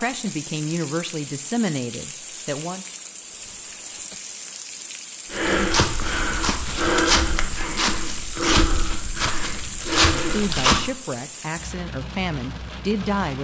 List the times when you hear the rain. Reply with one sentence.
The rain can be heard from 0.0 to 13.3 s.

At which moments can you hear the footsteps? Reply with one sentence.
You can hear the footsteps from 5.3 to 10.9 s.